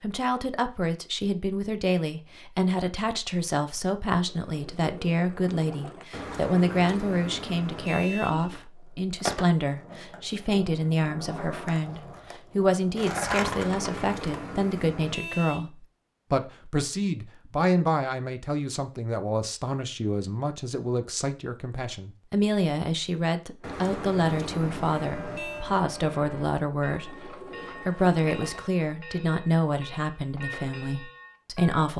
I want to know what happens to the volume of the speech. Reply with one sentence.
The volume of the speech stays about the same.